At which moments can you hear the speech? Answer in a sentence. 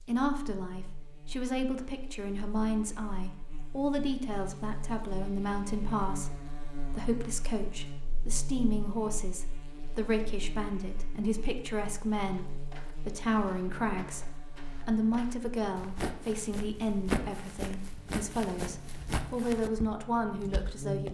The speech can be heard from 0.0 to 21.0 s.